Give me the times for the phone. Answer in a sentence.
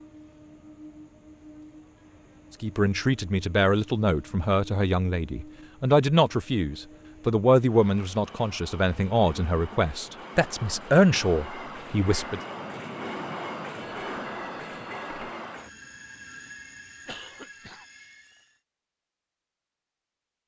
You can hear the phone from 13.9 to 15.4 s.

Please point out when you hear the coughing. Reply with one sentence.
The coughing can be heard from 17.1 to 17.9 s.